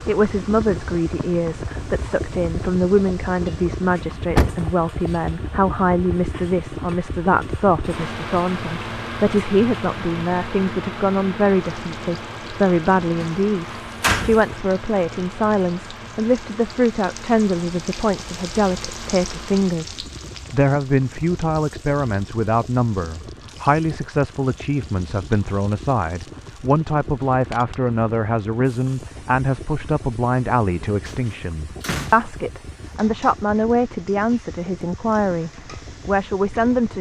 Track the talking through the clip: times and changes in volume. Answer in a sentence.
You can hear the talking from 0.1 to 36.9 s, at a steady volume.